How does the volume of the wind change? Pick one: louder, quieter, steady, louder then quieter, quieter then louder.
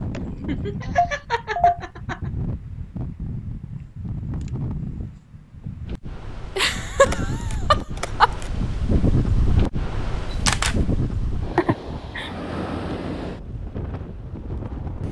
louder then quieter.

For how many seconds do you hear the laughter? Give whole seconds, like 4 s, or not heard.
5 s.